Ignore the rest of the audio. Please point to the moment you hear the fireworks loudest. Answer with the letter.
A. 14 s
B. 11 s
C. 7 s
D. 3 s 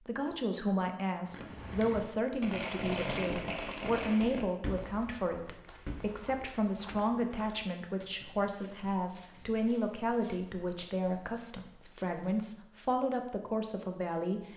D.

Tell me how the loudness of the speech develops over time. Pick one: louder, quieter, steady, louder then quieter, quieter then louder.
steady.